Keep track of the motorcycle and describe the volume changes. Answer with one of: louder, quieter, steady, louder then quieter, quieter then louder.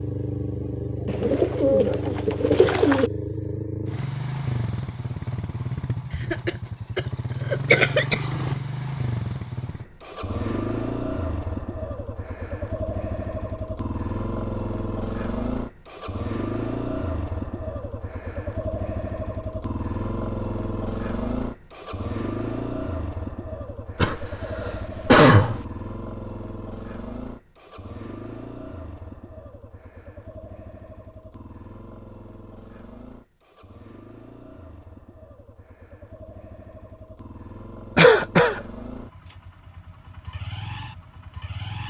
quieter.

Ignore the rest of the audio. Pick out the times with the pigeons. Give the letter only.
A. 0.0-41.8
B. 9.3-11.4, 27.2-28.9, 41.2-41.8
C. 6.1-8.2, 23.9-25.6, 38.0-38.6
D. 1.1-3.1
D.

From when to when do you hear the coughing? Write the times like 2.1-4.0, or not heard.
6.1-8.2, 23.9-25.6, 38.0-38.6.